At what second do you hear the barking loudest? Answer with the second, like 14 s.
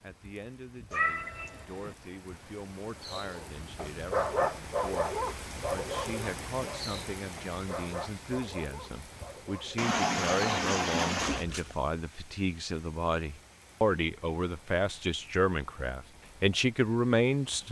4 s.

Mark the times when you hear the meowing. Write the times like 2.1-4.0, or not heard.
0.9-1.9, 9.8-11.4.